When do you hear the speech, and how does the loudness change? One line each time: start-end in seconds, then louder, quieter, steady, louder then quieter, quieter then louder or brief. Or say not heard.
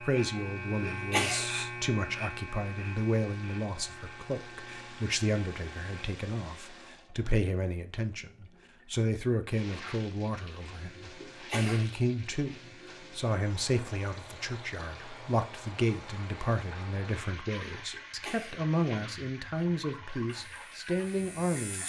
0.0-21.8 steady.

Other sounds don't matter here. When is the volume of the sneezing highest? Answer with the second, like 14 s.
1 s.